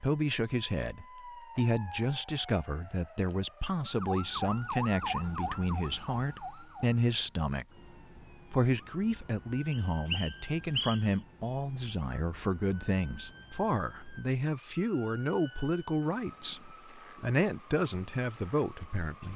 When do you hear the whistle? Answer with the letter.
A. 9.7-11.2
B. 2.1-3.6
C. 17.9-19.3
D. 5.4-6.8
A.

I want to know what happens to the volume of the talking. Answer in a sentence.
The loudness of the talking stays about the same.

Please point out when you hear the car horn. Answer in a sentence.
You can't hear the car horn here.